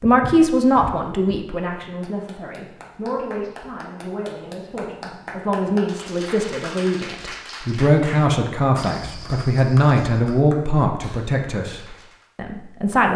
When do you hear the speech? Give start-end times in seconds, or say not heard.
0.0-13.1.